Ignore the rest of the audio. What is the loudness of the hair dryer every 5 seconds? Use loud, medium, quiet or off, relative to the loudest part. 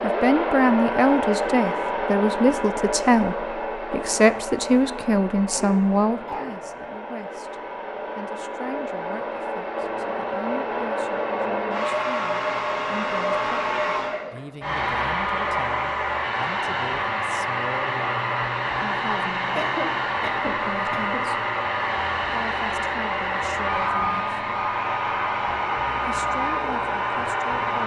loud, medium, loud, loud, loud, loud.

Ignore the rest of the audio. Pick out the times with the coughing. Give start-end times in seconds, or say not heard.
5.5-6.8, 19.6-21.2.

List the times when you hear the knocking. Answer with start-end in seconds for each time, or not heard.
not heard.